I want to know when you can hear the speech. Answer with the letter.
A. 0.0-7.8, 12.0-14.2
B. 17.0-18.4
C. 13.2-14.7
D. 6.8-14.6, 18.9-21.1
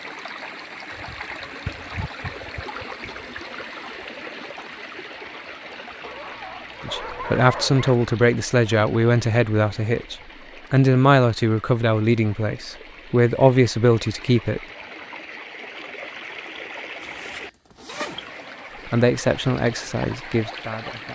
D.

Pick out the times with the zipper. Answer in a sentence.
You can hear the zipper from 17.0 to 18.4 s.